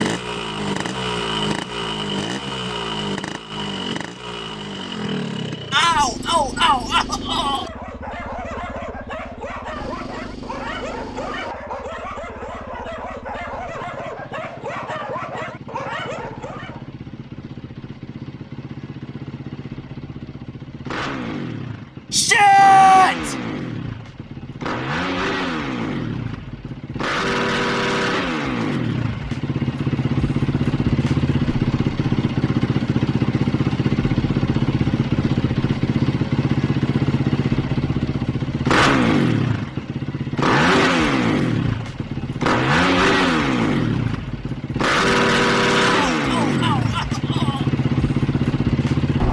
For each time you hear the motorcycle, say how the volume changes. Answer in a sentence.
The motorcycle can be heard from 0.0 to 49.2 s, getting quieter then louder.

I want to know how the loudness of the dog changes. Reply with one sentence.
The volume of the dog stays about the same.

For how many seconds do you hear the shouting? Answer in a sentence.
The shouting can be heard for 5 seconds in total.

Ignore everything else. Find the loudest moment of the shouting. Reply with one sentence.
The volume of the shouting peaks at 23 seconds.